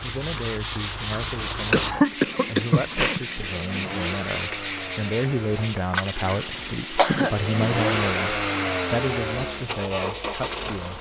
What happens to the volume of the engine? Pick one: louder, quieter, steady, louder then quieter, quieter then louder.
louder.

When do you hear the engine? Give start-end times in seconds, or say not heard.
0.0-10.9.